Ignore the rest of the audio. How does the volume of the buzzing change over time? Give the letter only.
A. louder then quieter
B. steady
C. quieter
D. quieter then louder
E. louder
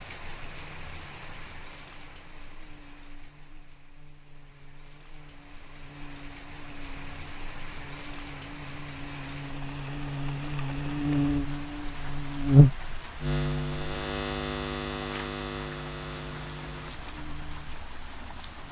A.